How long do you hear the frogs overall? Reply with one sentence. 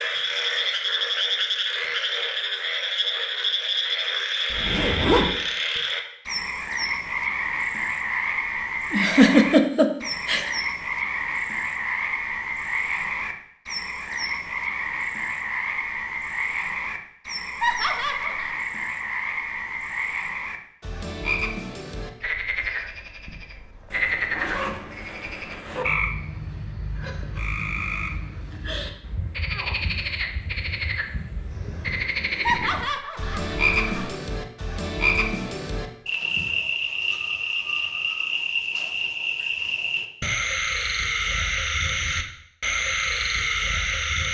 You can hear the frogs for 44 seconds altogether.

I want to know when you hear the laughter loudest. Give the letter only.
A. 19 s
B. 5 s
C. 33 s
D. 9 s
D.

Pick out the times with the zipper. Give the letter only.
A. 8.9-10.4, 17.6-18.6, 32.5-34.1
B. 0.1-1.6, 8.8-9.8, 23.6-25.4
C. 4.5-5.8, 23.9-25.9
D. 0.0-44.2
C.